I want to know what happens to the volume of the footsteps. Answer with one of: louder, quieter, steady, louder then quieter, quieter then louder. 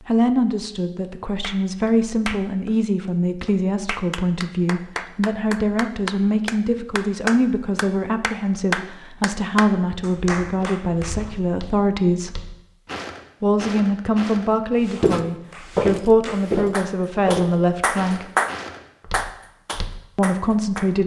louder then quieter.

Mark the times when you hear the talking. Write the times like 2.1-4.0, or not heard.
0.1-12.4, 13.4-18.2, 20.1-21.0.